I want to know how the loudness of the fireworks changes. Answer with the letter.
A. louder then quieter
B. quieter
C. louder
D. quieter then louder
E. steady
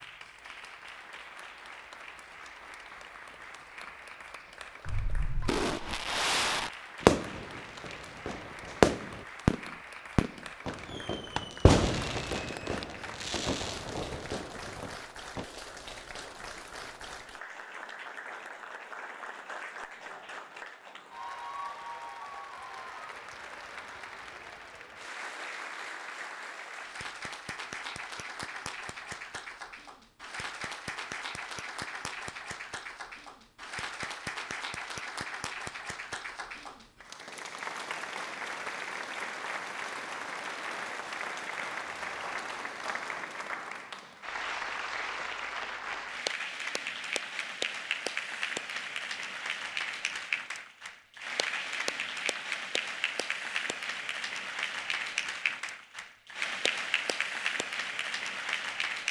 B.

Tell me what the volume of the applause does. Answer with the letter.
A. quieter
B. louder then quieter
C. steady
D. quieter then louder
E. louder
E.